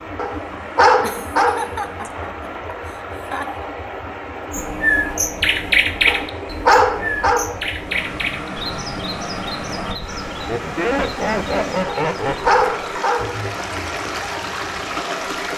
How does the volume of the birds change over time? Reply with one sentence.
The volume of the birds goes down.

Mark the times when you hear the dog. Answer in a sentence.
The dog can be heard from 0.1 to 1.6 s, from 6.0 to 7.5 s and from 11.8 to 13.3 s.